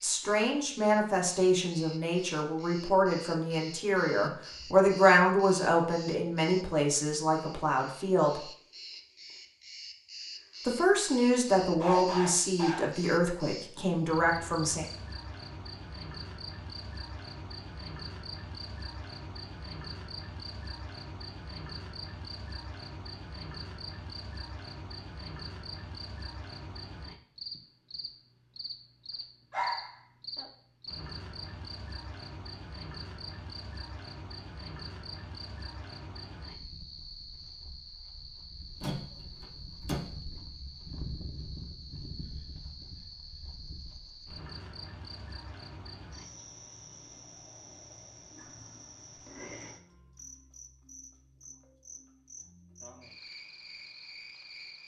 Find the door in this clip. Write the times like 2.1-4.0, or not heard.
38.8-40.0.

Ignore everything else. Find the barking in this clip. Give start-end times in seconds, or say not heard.
11.7-12.9, 29.5-30.4.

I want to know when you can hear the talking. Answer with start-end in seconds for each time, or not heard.
0.0-8.5, 10.7-14.8.